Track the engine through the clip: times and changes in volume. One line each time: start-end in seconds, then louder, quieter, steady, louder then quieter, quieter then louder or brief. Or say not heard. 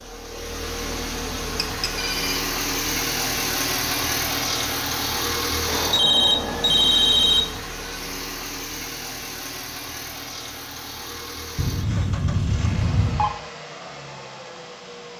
0.0-15.1 quieter.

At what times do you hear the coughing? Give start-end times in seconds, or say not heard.
not heard.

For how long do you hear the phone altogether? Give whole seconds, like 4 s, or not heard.
4 s.